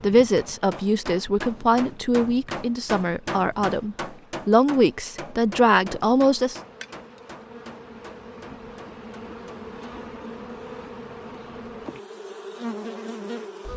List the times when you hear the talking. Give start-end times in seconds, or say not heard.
0.0-6.5.